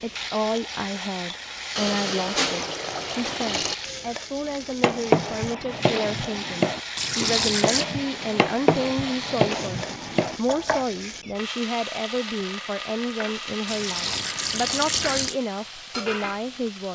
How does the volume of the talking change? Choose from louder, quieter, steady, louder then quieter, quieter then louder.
steady.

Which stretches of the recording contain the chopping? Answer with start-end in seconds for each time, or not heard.
4.8-10.8.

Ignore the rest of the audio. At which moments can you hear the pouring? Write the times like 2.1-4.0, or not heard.
1.8-3.8, 7.0-7.8, 13.7-15.3.